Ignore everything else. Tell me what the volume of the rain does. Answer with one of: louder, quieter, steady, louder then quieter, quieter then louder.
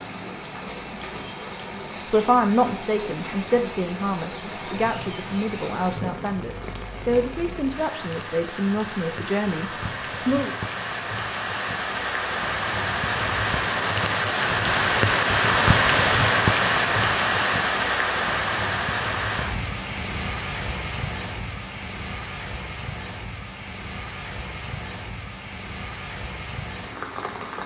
louder then quieter.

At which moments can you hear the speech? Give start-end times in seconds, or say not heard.
2.1-10.6.